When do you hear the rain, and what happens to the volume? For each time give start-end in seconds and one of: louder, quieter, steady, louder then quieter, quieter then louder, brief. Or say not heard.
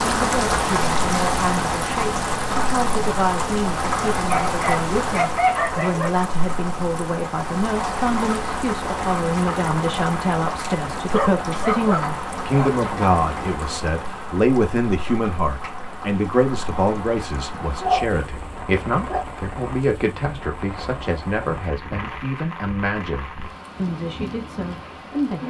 0.0-25.4 quieter.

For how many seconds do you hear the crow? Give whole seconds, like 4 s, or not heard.
not heard.